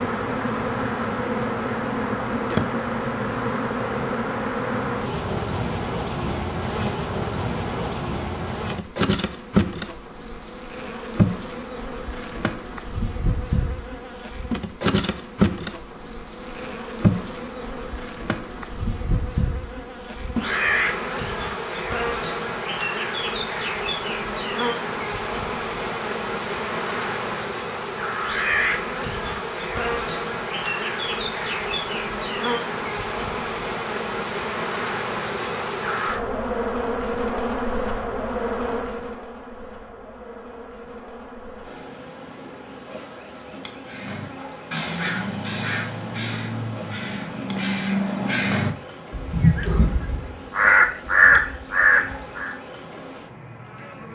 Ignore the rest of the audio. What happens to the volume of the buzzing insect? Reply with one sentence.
The loudness of the buzzing insect goes down.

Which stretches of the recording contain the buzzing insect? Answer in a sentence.
You can hear the buzzing insect from 0.0 to 54.1 s.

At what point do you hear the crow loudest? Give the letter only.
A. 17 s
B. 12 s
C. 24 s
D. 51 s
D.